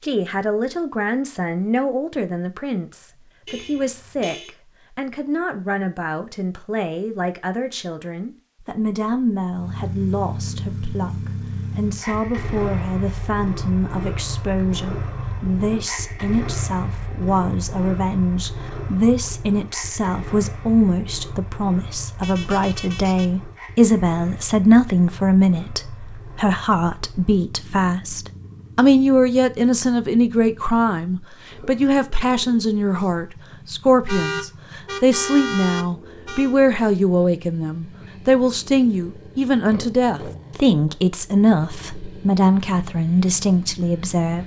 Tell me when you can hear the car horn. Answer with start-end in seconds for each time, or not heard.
3.5-4.5, 22.2-23.4, 34.0-36.5.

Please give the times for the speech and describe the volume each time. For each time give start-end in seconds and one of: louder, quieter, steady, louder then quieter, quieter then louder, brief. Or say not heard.
0.0-44.4 louder.